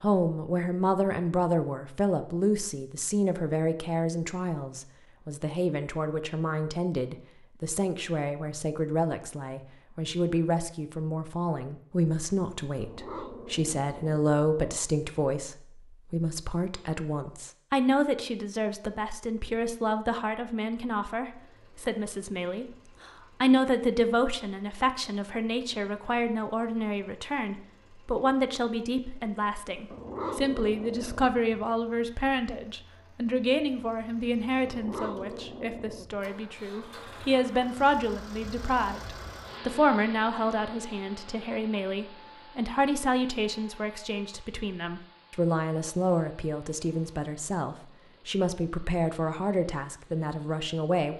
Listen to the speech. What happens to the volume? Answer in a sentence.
The loudness of the speech stays about the same.